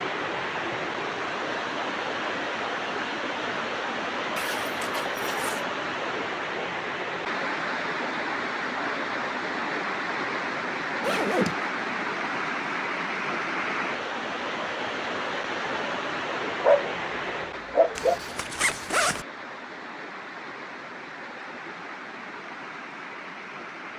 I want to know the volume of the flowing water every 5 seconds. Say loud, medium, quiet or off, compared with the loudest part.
loud, loud, loud, loud, medium.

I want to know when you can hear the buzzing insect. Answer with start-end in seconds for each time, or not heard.
not heard.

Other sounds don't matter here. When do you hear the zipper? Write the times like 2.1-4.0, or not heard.
4.3-5.7, 11.0-11.7, 17.9-19.2.